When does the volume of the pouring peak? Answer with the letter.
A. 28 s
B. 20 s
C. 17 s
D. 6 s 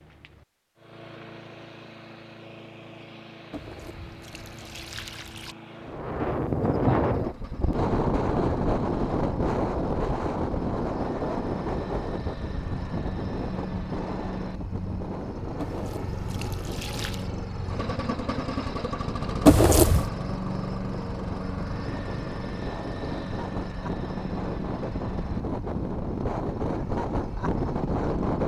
B.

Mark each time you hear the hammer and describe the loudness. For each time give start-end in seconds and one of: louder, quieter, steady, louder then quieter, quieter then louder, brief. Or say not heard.
not heard.